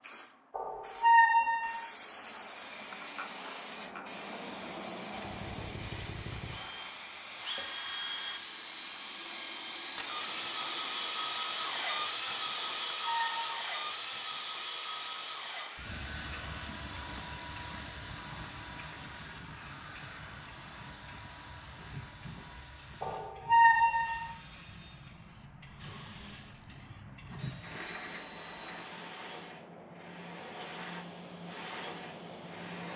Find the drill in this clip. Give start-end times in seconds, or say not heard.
5.1-32.8.